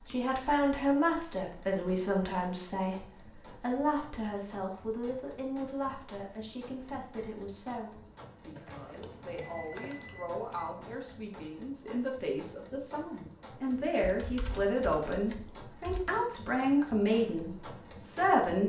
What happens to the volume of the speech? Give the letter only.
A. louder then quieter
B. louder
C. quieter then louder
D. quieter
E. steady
C.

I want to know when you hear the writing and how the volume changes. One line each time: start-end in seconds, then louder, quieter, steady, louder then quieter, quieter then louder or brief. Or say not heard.
not heard.